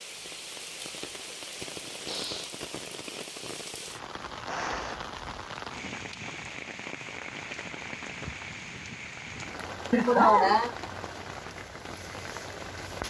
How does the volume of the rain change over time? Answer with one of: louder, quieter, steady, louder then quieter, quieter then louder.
steady.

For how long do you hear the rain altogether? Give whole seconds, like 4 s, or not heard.
13 s.